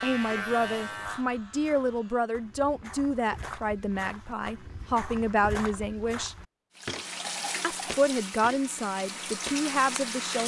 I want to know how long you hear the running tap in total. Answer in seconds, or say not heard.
4 s.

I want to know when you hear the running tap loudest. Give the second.
10 s.